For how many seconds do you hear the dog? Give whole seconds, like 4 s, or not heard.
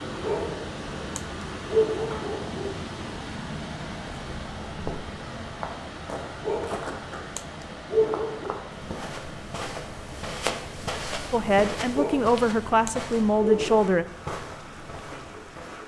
7 s.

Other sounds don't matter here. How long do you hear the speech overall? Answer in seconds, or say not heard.
3 s.